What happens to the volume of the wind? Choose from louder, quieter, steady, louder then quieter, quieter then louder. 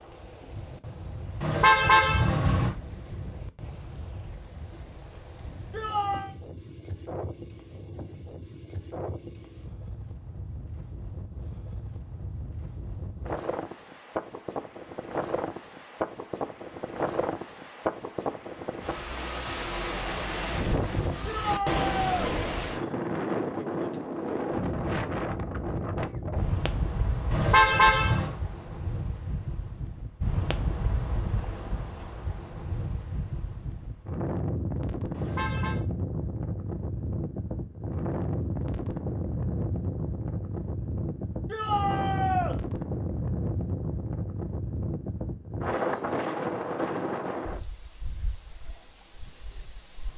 louder.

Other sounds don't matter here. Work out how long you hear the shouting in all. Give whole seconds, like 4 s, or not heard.
3 s.